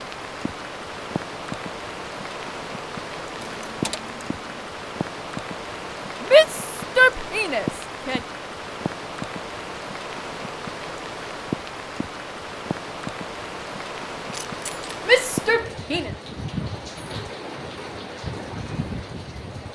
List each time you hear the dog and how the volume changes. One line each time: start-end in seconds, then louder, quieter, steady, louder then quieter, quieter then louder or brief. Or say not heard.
not heard.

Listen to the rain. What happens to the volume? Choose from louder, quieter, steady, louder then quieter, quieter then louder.
steady.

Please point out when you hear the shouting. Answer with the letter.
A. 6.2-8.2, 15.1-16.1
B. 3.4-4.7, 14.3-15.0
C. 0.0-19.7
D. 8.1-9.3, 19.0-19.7
A.